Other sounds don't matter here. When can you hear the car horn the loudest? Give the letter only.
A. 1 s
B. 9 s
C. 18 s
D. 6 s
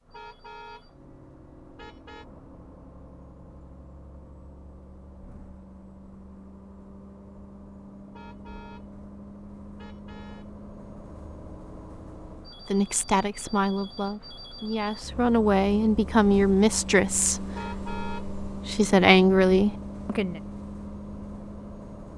C.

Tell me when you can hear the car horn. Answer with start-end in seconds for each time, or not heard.
0.1-0.8, 1.8-2.2, 8.1-8.8, 9.8-10.4, 17.6-18.3.